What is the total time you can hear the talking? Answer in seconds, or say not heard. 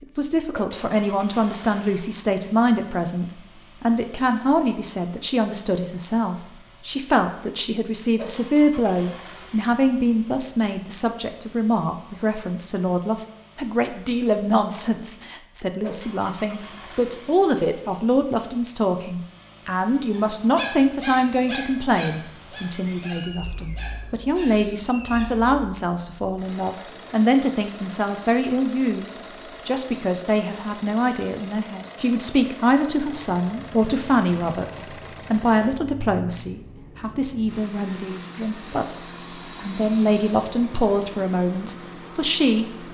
42 s.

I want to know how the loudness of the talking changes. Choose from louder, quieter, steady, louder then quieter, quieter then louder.
steady.